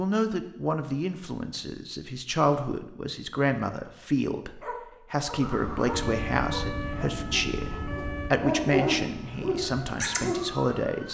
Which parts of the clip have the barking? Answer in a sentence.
The barking can be heard from 4.6 to 10.7 s.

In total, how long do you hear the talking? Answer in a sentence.
The talking can be heard for 11 seconds in total.